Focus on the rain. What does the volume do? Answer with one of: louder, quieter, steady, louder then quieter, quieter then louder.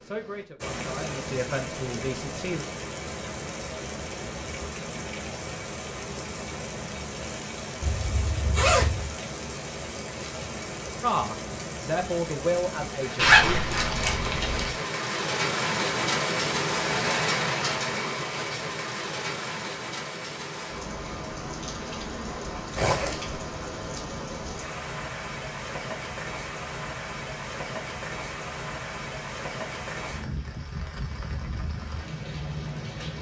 louder then quieter.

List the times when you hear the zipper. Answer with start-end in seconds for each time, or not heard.
7.8-9.1, 13.2-14.7, 22.8-23.4.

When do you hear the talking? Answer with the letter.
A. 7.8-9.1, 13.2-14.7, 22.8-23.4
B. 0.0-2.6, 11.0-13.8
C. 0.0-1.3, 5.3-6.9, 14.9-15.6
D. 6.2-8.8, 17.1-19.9
B.